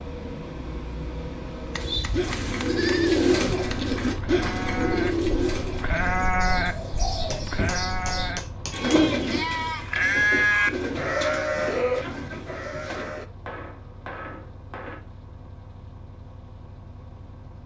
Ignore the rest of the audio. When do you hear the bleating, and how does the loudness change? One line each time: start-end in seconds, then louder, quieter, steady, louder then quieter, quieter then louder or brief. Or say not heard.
1.8-13.3 louder.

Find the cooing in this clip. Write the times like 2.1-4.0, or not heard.
1.9-13.1.